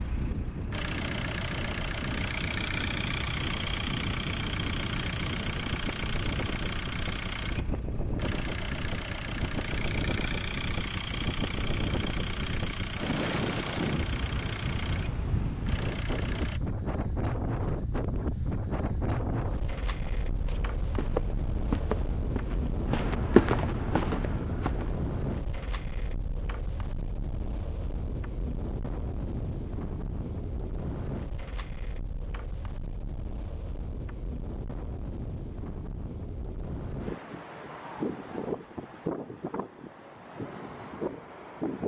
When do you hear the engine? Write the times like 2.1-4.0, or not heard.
0.0-16.6.